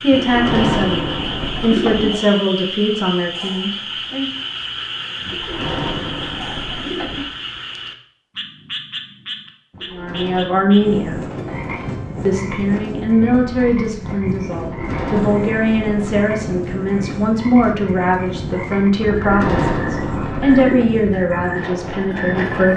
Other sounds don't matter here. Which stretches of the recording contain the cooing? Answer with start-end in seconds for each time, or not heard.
0.1-2.1, 5.2-7.2, 9.7-11.7, 14.6-16.2, 19.1-20.9.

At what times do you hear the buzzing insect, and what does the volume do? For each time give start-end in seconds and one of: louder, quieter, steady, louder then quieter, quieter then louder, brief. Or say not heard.
not heard.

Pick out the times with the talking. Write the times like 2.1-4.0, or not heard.
0.0-4.3, 9.9-11.2, 12.2-22.7.